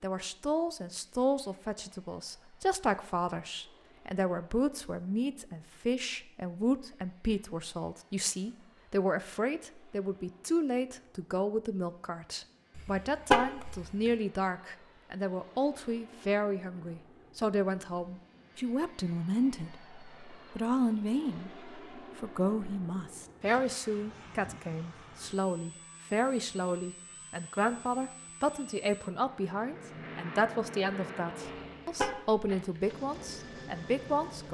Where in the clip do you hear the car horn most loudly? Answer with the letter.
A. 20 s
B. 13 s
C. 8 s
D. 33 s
B.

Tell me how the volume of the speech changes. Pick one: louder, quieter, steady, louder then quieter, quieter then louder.
steady.